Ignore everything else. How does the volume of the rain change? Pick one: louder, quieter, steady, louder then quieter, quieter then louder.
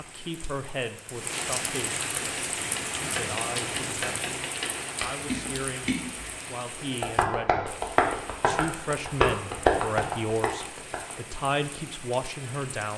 quieter.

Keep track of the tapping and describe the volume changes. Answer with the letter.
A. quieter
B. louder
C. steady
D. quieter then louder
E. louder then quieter
B.